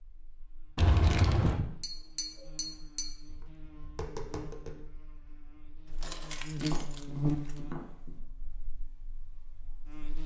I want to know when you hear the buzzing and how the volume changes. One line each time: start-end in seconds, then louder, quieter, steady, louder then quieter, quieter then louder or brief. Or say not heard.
0.0-10.2 louder then quieter.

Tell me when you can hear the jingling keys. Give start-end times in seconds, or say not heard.
0.8-1.6, 5.9-7.6.